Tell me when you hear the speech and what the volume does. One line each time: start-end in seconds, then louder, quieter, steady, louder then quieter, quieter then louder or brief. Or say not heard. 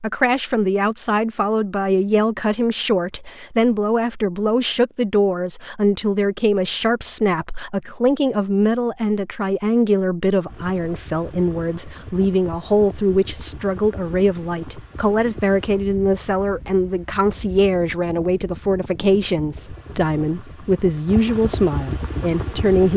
0.0-22.9 steady.